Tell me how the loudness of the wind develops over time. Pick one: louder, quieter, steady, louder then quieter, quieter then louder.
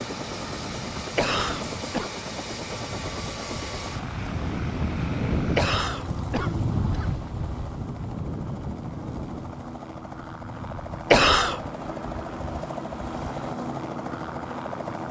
louder then quieter.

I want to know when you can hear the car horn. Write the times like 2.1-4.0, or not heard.
not heard.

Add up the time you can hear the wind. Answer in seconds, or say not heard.
15 s.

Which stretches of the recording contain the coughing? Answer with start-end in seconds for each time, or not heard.
1.1-2.1, 5.5-7.1, 11.1-11.6.